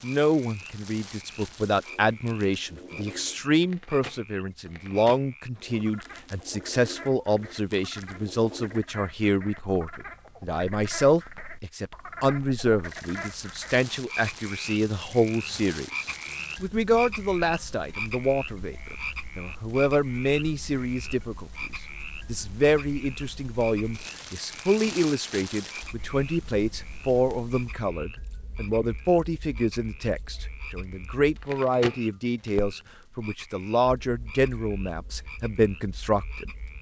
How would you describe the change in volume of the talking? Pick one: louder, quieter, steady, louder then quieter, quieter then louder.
steady.